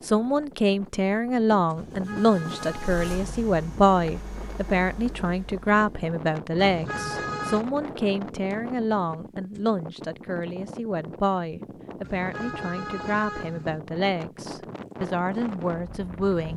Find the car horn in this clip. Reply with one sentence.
You can hear the car horn from 1.8 to 3.5 s, from 6.5 to 7.7 s and from 12.0 to 13.8 s.